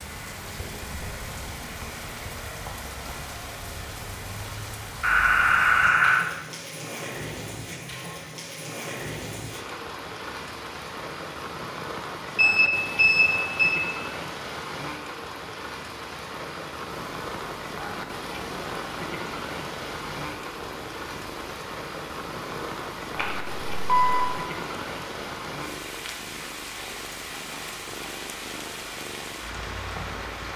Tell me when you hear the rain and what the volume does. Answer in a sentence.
You can hear the rain from 0.0 to 30.5 s, at a steady volume.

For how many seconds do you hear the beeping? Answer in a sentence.
You can hear the beeping for 4 seconds altogether.